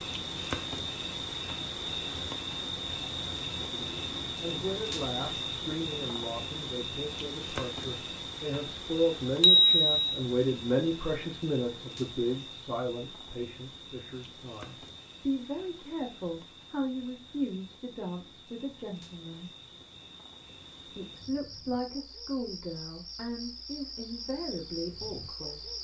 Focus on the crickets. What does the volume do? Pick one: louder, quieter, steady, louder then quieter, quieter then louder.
quieter then louder.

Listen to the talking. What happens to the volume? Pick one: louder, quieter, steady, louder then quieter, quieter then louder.
louder then quieter.